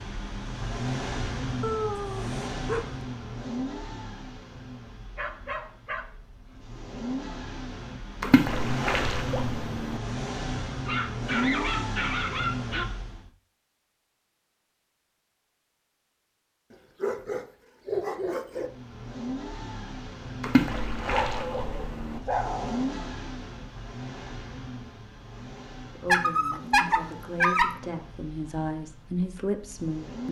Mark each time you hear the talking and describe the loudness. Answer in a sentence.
You can hear the talking from 25.9 to 30.2 s, getting louder.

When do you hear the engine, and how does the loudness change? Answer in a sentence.
You can hear the engine from 0.0 to 13.3 s, getting quieter then louder; and from 18.4 to 30.2 s, getting quieter.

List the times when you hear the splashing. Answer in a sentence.
The splashing can be heard from 8.2 to 10.0 s and from 20.4 to 22.2 s.